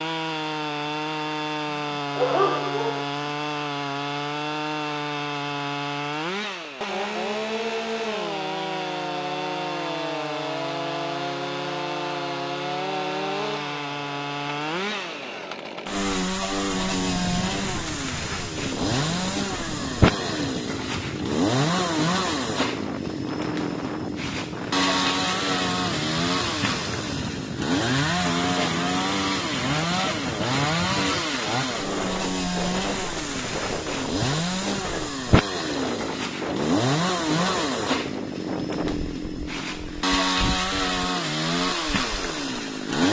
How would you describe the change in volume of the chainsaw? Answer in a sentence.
The loudness of the chainsaw stays about the same.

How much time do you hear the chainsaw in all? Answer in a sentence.
You can hear the chainsaw for 43 seconds altogether.